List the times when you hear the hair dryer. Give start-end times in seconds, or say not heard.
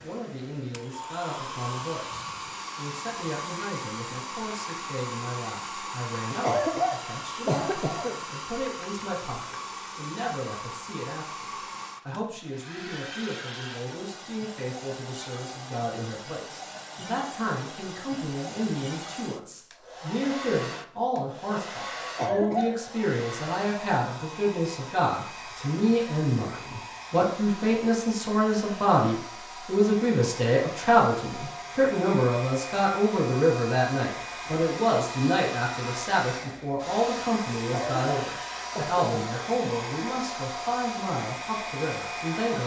0.0-42.6.